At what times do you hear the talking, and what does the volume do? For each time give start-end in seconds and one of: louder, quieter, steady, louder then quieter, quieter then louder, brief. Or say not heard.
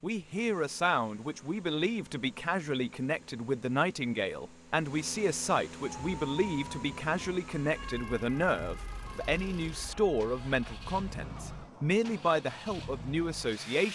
0.0-13.9 steady.